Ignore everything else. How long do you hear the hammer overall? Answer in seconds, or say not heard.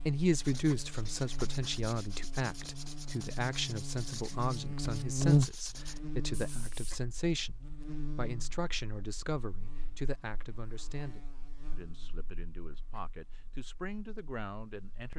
not heard.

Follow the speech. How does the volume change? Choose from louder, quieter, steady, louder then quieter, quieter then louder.
quieter.